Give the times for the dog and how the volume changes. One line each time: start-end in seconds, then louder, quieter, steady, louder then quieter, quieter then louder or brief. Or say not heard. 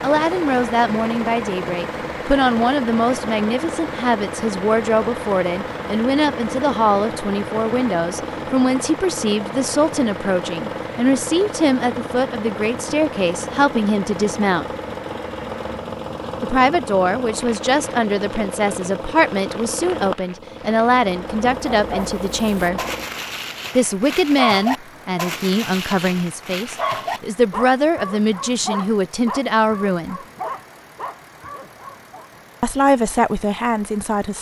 21.8-32.3 louder then quieter.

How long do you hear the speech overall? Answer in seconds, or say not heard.
29 s.